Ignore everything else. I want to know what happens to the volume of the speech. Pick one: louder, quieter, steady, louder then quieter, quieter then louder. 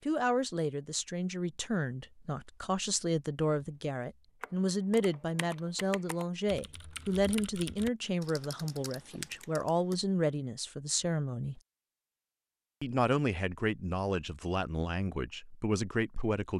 steady.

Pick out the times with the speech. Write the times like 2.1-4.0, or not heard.
0.0-11.6, 12.8-16.5.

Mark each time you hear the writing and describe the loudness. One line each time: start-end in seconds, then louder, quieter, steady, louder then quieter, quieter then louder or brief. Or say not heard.
not heard.